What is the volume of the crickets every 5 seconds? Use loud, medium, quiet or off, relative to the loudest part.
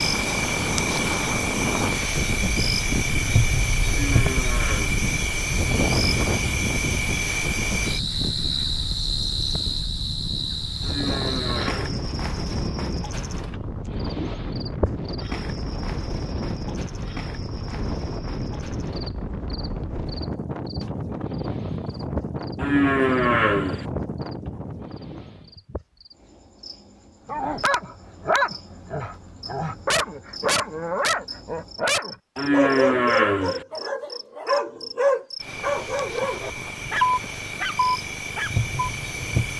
loud, loud, medium, quiet, quiet, quiet, quiet, medium.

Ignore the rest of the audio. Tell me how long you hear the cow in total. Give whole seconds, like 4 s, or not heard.
5 s.